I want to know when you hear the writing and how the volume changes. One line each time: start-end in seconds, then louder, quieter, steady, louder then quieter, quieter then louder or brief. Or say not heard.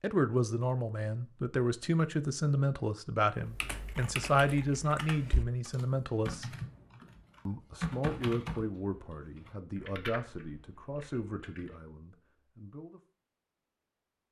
not heard.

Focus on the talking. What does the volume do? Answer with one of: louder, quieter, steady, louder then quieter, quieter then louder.
quieter.